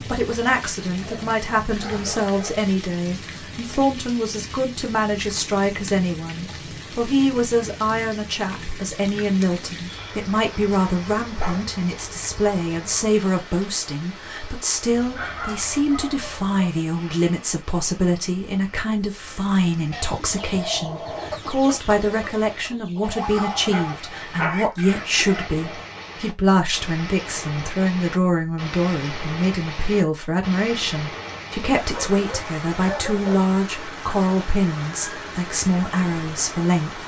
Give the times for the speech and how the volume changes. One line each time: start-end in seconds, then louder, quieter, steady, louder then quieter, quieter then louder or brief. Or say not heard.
0.0-37.0 steady.